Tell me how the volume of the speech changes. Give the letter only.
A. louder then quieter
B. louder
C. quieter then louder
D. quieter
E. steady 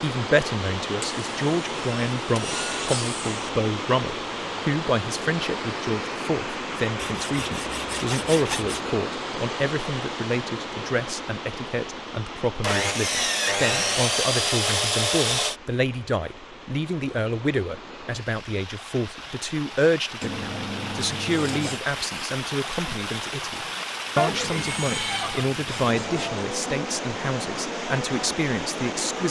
E.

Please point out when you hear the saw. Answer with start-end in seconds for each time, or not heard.
1.0-3.5, 7.0-8.8, 12.6-15.6, 20.2-21.9, 24.2-26.2.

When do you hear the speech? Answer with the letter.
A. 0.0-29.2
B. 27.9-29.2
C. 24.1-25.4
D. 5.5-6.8
A.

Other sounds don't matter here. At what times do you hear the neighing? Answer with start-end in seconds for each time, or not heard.
24.1-25.4.